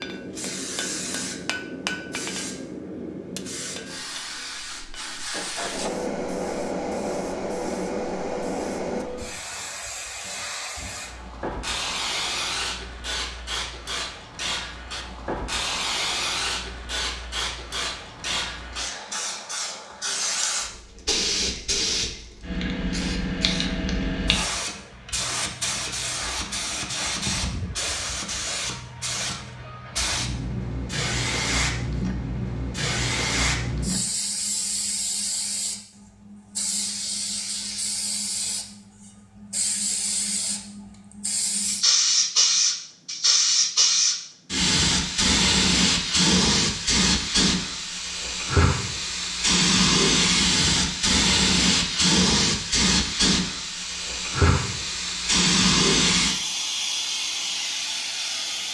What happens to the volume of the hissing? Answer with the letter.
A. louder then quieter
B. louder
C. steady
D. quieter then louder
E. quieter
B.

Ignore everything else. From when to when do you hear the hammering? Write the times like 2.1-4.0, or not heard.
0.0-5.9.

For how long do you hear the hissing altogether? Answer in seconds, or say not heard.
59 s.